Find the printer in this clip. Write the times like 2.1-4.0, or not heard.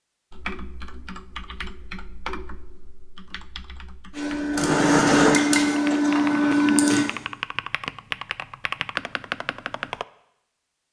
4.2-7.1.